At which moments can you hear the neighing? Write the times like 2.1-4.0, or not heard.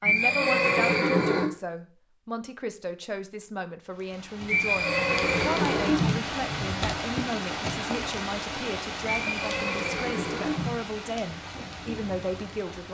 0.0-1.5, 4.5-6.2, 9.1-10.8.